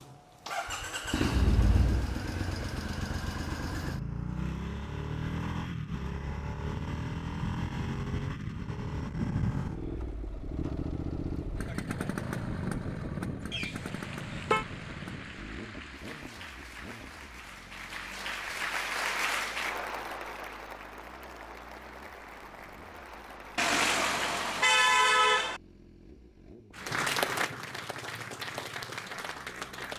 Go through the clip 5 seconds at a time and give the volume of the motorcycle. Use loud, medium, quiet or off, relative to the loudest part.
loud, loud, loud, quiet, quiet, quiet.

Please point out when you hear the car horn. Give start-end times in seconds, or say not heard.
1.2-2.1, 13.5-14.7, 23.6-25.6.